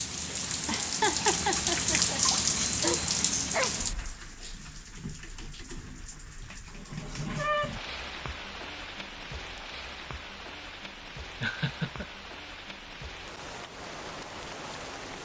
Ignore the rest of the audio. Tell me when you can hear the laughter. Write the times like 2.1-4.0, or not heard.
0.7-3.0, 11.4-12.1.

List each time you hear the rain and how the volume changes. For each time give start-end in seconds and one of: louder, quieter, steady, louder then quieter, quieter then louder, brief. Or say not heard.
0.0-15.2 quieter.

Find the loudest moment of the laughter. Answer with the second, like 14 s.
1 s.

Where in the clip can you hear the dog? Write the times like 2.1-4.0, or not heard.
2.8-4.5.